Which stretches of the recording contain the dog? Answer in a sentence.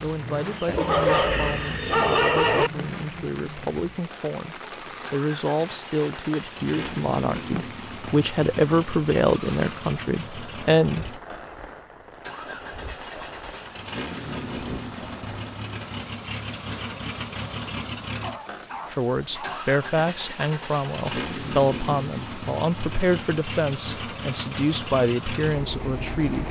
You can hear the dog from 0.7 to 2.7 s and from 18.2 to 19.6 s.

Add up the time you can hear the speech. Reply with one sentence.
The speech can be heard for 19 seconds in total.